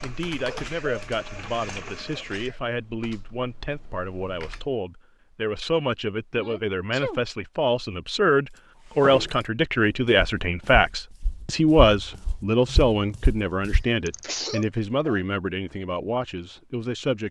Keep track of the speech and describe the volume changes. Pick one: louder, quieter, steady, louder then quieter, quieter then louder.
louder then quieter.